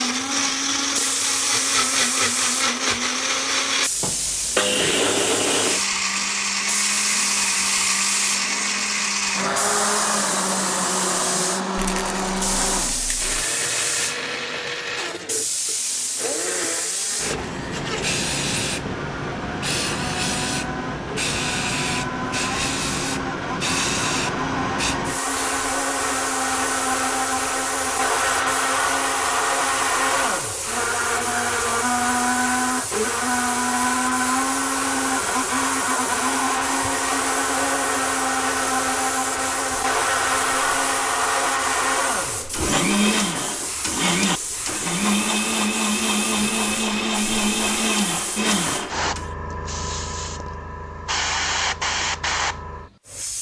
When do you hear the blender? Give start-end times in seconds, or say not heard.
0.0-49.3.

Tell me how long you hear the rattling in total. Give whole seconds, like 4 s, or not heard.
2 s.